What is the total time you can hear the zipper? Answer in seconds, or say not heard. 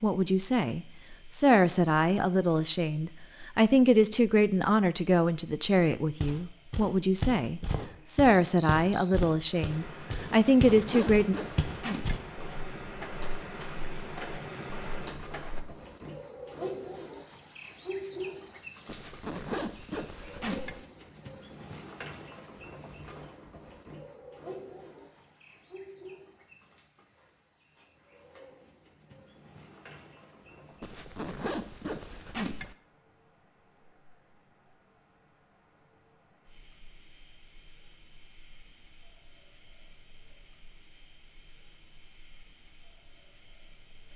6 s.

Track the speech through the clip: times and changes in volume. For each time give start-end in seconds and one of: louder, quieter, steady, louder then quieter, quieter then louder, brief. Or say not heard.
0.0-11.3 steady.